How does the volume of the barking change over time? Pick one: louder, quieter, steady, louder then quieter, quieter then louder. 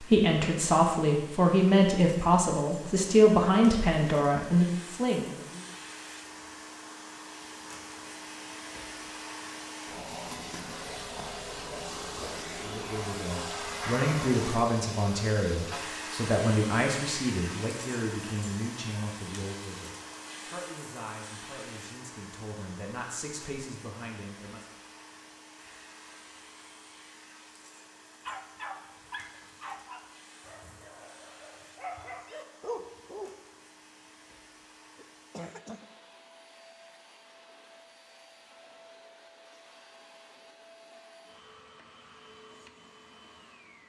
quieter then louder.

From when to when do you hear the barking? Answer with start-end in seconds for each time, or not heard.
28.2-33.3.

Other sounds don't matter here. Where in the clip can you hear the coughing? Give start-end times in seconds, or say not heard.
35.0-35.9.